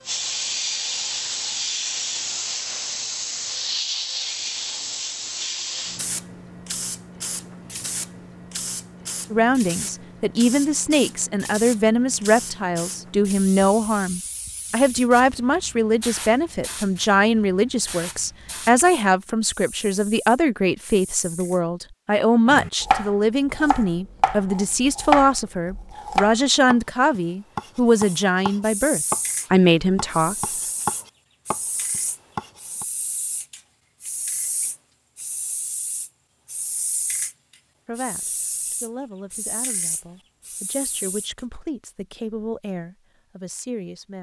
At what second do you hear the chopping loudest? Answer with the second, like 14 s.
25 s.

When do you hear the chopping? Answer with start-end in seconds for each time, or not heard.
22.4-32.9.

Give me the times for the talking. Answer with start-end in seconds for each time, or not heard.
9.3-30.4, 37.9-44.1.